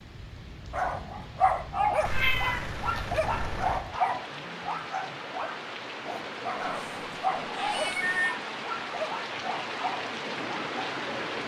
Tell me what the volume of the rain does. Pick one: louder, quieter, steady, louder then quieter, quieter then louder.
louder.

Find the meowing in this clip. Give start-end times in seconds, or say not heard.
2.0-3.9, 6.5-8.4.